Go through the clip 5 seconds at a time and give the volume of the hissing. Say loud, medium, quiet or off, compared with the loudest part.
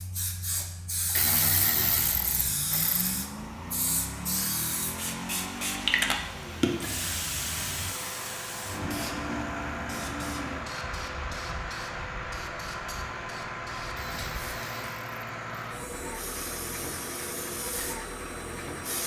loud, loud, medium, medium.